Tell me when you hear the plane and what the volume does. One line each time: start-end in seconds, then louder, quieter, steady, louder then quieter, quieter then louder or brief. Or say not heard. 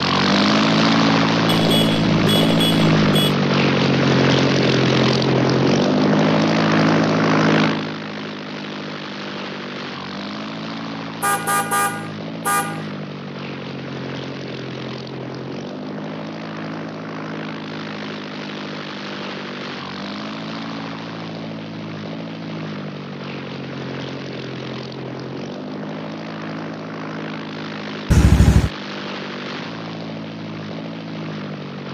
0.0-31.8 quieter.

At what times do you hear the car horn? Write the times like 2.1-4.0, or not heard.
1.5-3.4, 11.2-12.8, 28.1-28.7.